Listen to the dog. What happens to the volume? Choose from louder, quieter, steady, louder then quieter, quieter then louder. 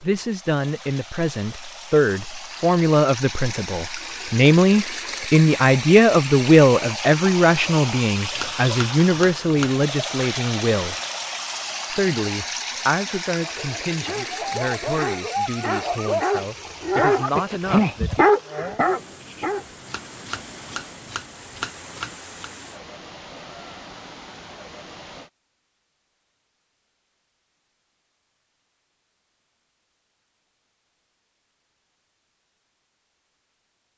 louder.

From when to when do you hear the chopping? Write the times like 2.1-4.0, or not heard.
8.3-9.8, 19.9-22.5.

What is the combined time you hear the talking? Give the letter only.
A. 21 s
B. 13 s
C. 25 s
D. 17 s
D.